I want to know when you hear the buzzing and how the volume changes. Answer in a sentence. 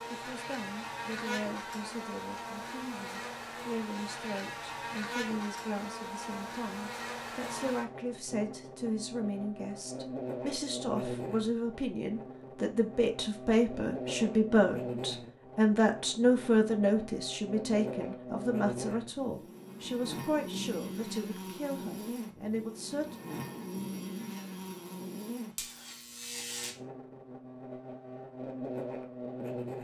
The buzzing can be heard from 0.0 to 29.7 s, at a steady volume.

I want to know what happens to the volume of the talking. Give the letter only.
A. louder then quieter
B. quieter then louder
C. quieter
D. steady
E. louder
A.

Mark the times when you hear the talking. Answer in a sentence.
The talking can be heard from 0.0 to 23.1 s.